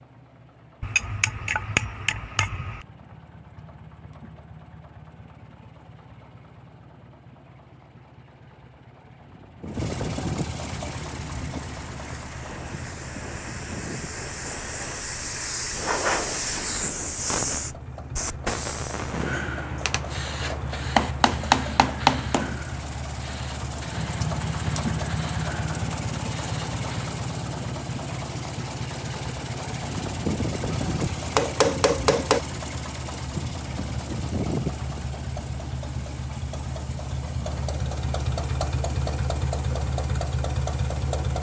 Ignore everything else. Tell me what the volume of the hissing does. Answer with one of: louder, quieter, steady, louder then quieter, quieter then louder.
louder then quieter.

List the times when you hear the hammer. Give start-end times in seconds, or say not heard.
0.8-2.9, 19.9-22.6, 30.7-32.4.